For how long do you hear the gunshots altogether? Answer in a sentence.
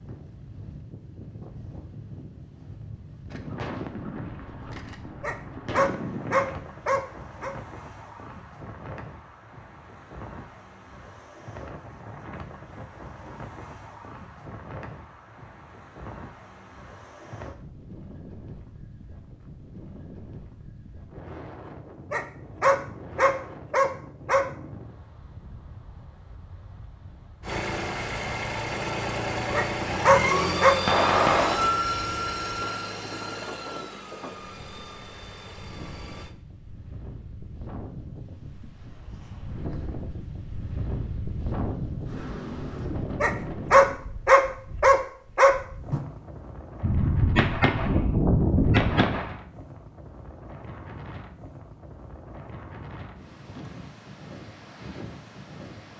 The gunshots can be heard for 7 seconds in total.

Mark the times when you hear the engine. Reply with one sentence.
The engine can be heard from 27.4 to 36.4 s.